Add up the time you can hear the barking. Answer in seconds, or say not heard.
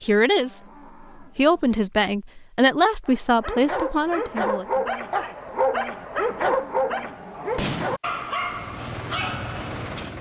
7 s.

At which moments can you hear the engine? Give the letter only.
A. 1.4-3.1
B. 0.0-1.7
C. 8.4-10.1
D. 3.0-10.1
C.